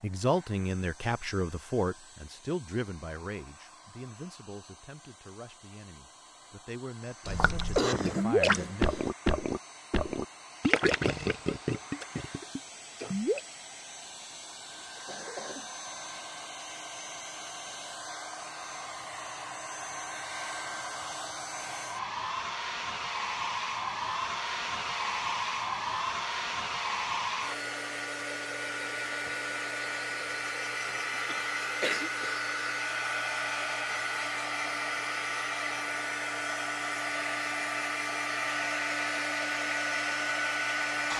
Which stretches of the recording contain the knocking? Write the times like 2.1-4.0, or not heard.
not heard.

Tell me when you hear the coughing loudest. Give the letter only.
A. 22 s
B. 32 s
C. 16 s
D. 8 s
D.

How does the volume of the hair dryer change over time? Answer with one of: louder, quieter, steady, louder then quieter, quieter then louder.
louder.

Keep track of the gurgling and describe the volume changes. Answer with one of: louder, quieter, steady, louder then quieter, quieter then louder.
quieter.